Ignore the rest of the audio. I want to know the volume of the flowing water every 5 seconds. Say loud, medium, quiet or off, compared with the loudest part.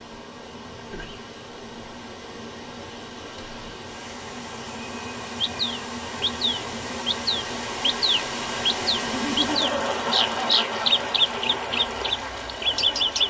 medium, loud, loud.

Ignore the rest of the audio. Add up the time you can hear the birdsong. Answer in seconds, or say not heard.
8 s.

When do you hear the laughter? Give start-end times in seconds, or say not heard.
0.8-1.2, 9.0-10.9.